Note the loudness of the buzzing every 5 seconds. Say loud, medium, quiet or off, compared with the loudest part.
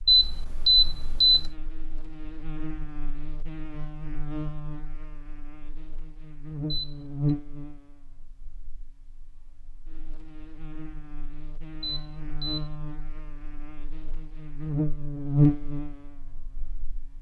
quiet, medium, medium, loud.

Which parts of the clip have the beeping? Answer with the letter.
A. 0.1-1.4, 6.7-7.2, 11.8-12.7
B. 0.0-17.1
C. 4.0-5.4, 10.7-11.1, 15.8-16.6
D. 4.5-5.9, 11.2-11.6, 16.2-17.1
A.